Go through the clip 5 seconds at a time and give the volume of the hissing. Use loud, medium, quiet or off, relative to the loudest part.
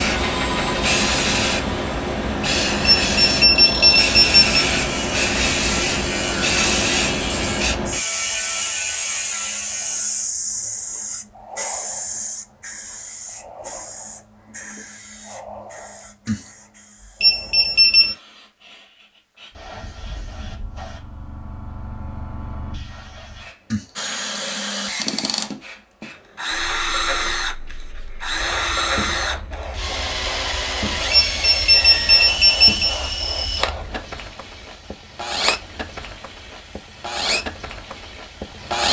loud, loud, medium, quiet, quiet, quiet, quiet, quiet.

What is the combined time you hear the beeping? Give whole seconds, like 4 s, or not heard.
4 s.